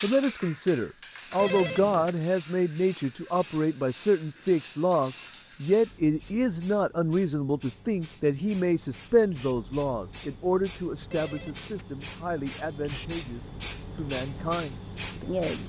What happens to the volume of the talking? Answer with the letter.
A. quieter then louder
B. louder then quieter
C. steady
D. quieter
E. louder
D.